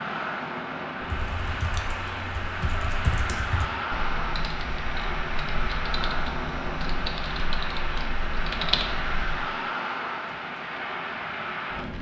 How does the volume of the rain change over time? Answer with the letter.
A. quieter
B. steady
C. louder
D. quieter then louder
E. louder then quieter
B.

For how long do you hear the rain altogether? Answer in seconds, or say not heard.
12 s.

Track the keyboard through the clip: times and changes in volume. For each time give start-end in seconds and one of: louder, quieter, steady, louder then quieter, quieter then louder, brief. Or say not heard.
1.0-9.6 louder.